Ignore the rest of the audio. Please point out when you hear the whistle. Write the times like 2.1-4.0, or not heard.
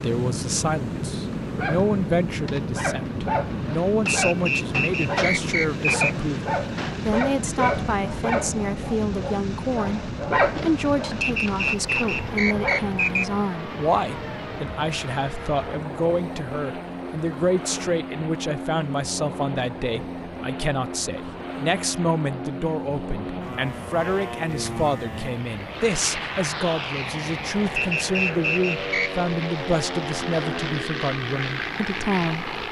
4.0-6.1, 11.2-13.2, 27.8-29.1.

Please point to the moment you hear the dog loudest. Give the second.
10 s.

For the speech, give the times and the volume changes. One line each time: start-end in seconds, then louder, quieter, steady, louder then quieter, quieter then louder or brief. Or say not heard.
0.0-32.5 steady.